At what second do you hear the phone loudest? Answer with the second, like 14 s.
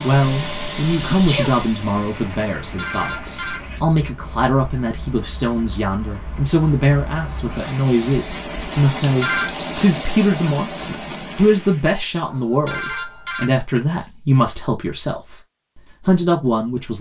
9 s.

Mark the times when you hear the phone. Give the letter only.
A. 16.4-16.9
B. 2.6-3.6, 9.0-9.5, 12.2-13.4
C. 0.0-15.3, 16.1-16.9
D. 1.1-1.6
B.